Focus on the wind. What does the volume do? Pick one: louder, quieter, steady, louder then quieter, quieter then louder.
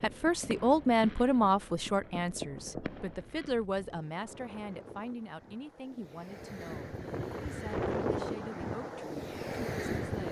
louder.